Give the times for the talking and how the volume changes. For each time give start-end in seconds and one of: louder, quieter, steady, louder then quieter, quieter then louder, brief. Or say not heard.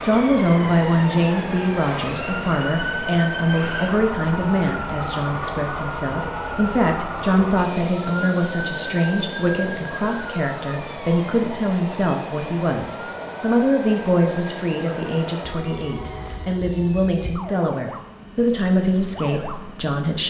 0.0-20.2 steady.